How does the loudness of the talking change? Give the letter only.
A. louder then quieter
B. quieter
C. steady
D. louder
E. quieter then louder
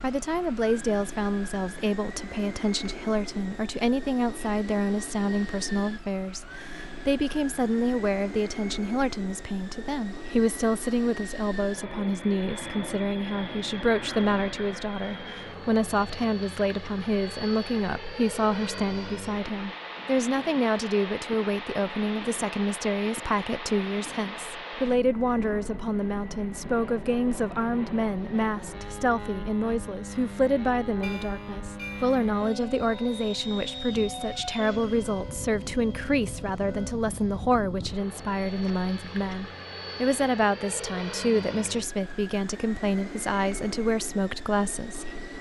C.